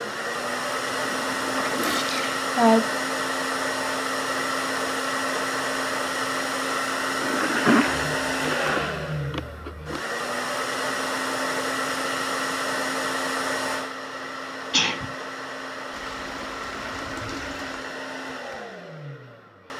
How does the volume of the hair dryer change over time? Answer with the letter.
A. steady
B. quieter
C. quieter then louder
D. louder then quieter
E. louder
B.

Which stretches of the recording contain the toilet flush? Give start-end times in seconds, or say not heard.
0.9-2.2, 7.2-8.1, 15.9-17.9.